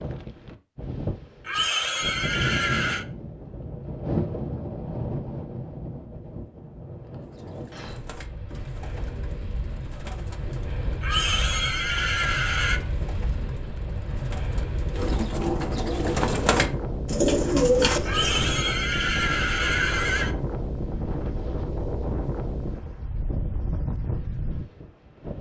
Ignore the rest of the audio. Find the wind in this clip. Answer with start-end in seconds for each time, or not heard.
0.0-25.3.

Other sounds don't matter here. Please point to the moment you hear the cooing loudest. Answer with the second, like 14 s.
18 s.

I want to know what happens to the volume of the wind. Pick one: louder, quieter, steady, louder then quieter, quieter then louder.
quieter then louder.